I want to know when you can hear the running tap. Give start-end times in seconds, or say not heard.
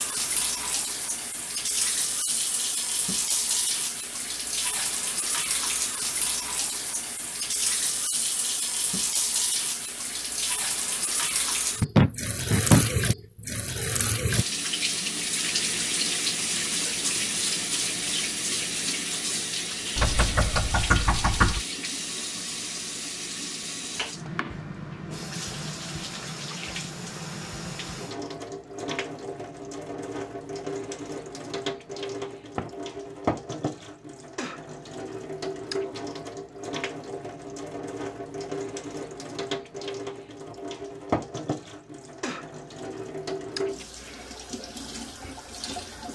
0.0-46.1.